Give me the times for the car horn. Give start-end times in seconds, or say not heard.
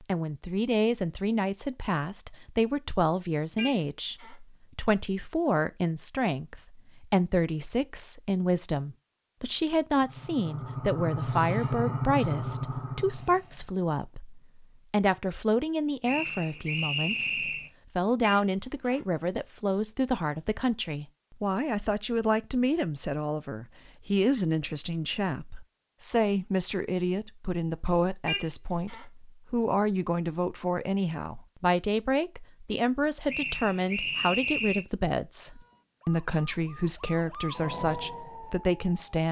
3.5-4.3, 18.2-19.1, 28.2-29.1.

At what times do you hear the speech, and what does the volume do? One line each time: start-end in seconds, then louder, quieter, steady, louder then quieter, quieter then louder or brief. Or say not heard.
0.0-39.2 steady.